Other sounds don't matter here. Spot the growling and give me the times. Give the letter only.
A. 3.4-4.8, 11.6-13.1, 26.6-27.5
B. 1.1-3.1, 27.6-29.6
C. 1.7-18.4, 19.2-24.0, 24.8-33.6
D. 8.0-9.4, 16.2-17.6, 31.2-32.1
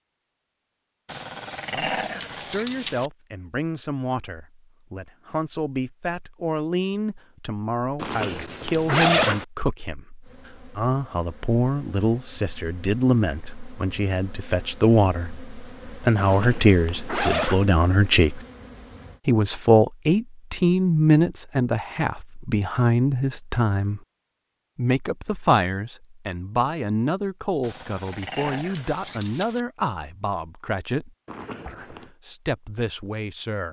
B.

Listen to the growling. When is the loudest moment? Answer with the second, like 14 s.
2 s.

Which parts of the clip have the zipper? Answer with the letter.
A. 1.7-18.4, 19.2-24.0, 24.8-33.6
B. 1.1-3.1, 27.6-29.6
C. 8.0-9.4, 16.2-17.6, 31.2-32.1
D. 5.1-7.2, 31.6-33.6
C.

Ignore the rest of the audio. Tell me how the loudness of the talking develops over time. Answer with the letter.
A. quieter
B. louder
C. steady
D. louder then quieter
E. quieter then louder
D.